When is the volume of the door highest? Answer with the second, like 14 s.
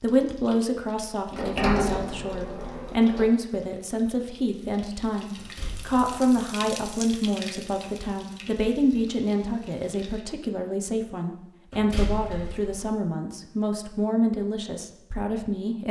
2 s.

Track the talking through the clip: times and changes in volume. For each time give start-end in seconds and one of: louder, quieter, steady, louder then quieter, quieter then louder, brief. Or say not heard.
0.0-15.8 steady.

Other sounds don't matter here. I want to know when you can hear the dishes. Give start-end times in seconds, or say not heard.
not heard.